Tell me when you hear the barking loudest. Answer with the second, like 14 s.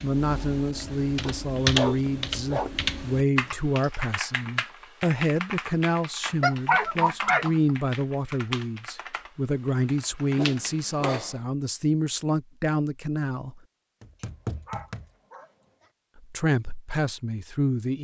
7 s.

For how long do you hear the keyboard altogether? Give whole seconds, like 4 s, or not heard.
11 s.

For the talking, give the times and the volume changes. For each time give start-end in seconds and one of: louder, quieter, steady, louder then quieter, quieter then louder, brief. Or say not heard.
0.0-13.6 steady
16.1-17.9 brief.